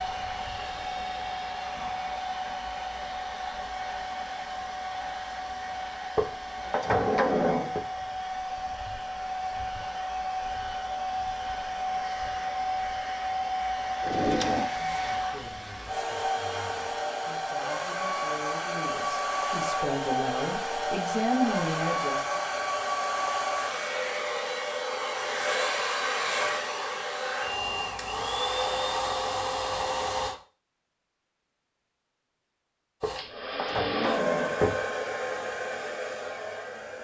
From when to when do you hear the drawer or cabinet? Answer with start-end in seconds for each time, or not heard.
6.2-7.8, 14.0-14.7, 33.0-34.8.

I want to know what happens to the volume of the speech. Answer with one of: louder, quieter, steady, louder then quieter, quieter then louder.
louder.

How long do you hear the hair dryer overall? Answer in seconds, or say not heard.
34 s.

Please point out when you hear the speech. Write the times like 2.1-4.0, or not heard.
14.8-22.4.